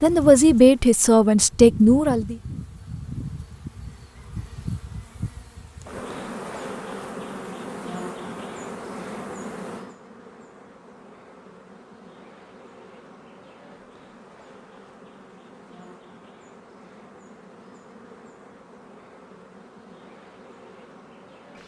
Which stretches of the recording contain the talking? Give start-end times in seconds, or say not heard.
0.0-2.4.